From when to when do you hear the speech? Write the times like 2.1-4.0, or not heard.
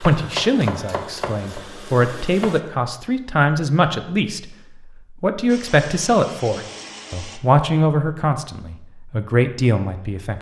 0.0-4.5, 5.2-10.3.